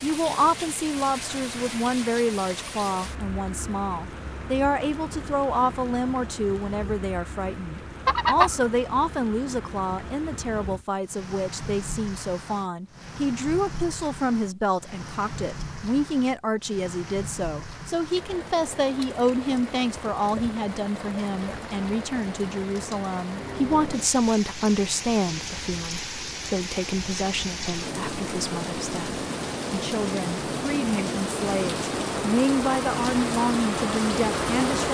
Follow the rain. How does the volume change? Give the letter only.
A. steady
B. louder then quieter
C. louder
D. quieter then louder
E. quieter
C.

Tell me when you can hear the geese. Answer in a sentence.
The geese can be heard from 8.1 to 8.6 s.